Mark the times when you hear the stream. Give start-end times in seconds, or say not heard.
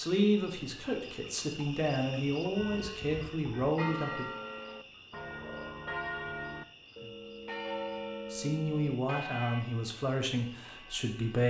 not heard.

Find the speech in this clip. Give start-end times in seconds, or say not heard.
0.0-4.2, 8.3-11.4.